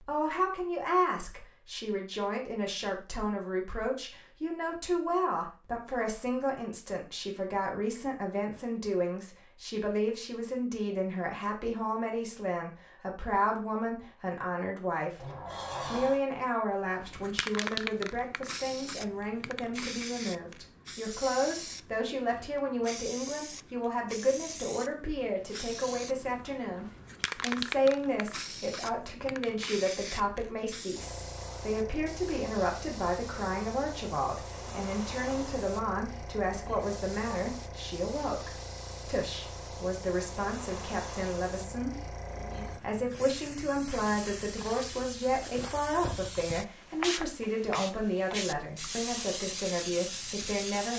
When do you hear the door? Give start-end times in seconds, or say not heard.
15.2-16.2.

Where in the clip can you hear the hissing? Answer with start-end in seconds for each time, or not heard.
16.9-50.9.